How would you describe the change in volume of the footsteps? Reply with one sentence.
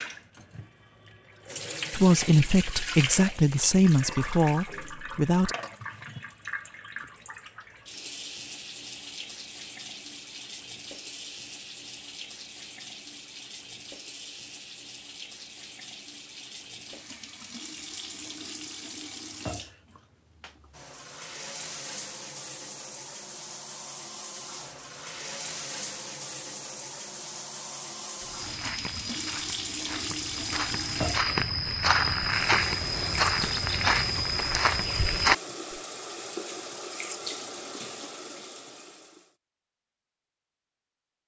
The volume of the footsteps goes up.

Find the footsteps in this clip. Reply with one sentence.
You can hear the footsteps from 28.2 to 35.4 s.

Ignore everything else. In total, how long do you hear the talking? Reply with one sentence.
You can hear the talking for 4 seconds altogether.